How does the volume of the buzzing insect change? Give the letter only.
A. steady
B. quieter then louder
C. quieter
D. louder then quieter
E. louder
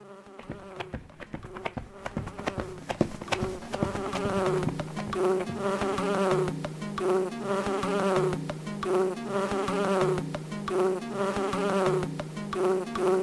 E.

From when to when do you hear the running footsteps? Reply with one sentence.
The running footsteps can be heard from 0.3 to 6.0 s.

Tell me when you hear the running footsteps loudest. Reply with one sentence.
The loudest moment of the running footsteps is at 3 seconds.